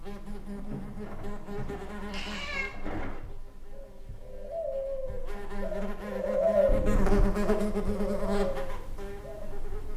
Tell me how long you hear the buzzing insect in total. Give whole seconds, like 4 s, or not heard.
10 s.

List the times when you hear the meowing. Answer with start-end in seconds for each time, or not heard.
1.8-2.7, 6.7-7.3.